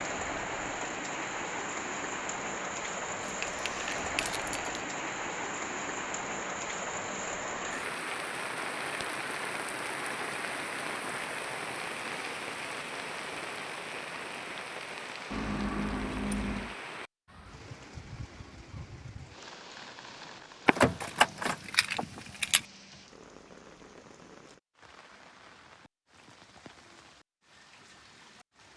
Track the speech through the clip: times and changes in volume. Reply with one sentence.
You can't hear the speech here.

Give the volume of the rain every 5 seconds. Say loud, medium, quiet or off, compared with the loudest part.
loud, loud, loud, medium, quiet, quiet.